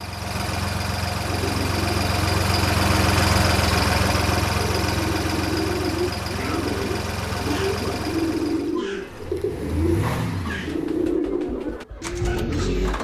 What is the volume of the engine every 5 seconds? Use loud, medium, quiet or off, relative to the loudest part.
loud, medium, medium.